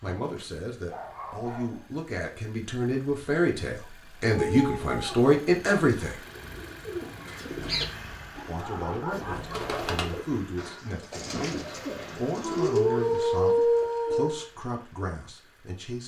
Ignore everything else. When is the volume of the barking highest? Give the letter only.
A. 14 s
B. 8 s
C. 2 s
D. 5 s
A.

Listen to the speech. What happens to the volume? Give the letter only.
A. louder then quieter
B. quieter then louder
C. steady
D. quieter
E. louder
A.